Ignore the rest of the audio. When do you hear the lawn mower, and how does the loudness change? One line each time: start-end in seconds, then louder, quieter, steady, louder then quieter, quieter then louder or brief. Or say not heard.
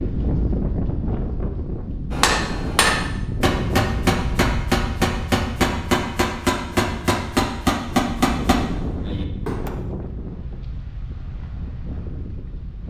not heard.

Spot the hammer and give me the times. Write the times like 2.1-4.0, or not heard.
2.1-9.7.